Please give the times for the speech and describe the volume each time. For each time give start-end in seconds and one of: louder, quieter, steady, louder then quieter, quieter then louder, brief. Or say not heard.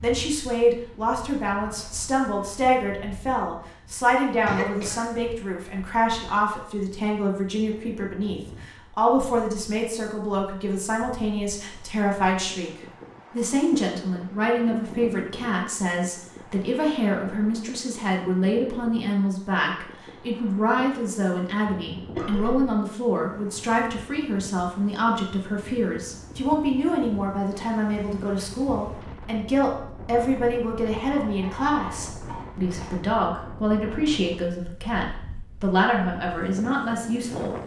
0.0-12.7 steady
13.3-37.6 steady.